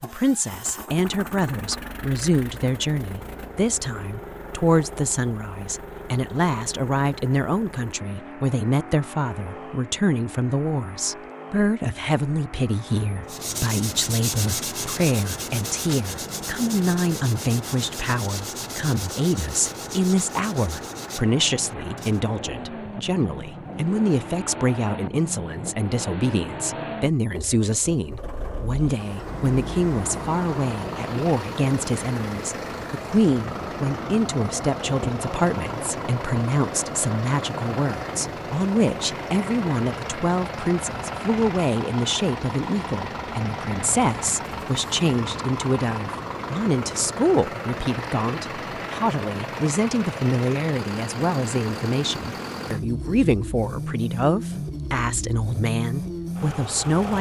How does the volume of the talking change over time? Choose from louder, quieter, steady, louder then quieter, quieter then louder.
steady.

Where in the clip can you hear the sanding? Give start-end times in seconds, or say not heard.
13.2-22.2.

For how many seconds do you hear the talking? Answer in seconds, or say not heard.
57 s.